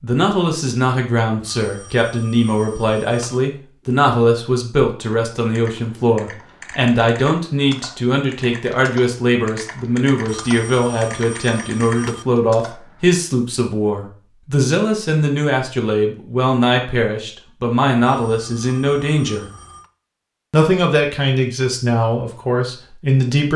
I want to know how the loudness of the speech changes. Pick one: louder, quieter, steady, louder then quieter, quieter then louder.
steady.